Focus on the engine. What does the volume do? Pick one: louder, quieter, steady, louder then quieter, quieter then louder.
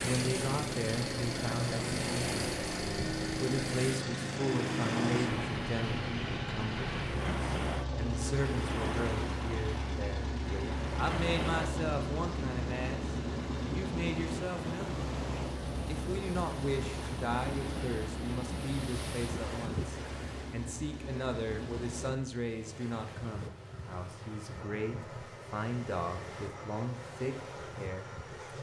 quieter.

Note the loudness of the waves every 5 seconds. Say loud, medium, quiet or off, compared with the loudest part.
loud, loud, loud, loud, medium, medium.